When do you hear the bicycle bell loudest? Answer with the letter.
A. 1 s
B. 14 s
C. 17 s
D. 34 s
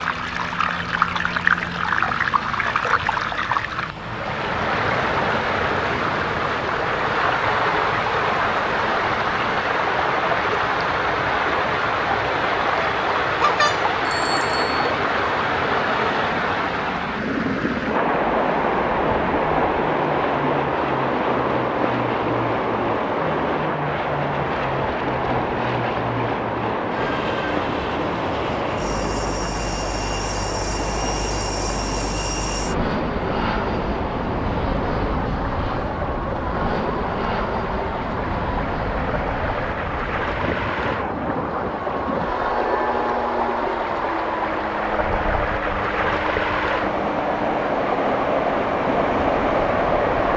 B.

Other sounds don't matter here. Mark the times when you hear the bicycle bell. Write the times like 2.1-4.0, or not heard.
13.4-14.8.